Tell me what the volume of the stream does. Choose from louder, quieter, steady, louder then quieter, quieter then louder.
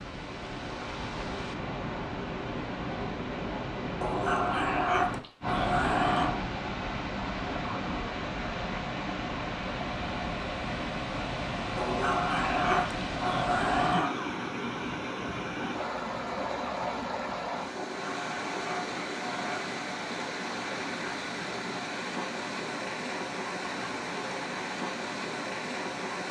steady.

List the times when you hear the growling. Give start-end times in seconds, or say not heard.
4.0-6.4, 11.8-14.2, 17.8-19.8.